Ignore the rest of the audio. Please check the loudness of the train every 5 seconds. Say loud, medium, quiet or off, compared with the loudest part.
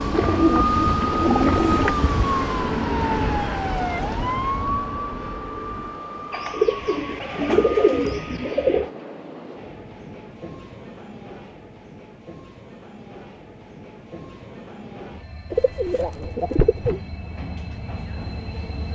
loud, medium, quiet, medium.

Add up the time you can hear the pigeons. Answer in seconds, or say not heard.
6 s.